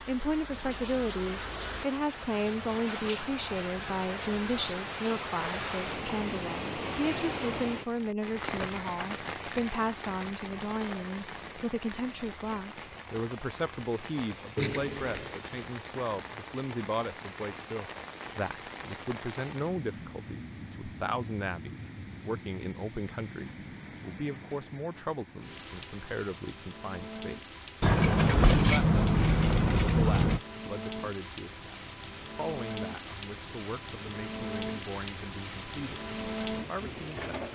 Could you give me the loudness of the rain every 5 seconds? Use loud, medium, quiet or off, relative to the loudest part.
loud, loud, medium, medium, medium, medium, loud, loud.